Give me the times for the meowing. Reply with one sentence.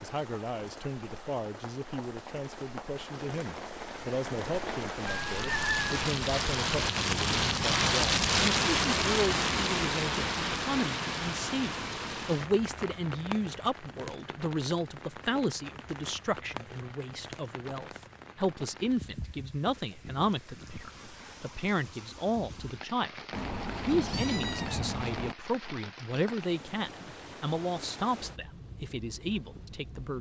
The meowing can be heard from 5.0 to 5.8 s and from 23.3 to 25.4 s.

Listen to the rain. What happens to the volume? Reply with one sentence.
The volume of the rain goes up, then down.